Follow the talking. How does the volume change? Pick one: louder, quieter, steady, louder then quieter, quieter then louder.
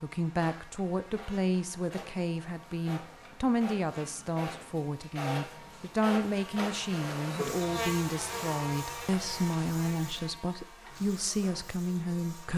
steady.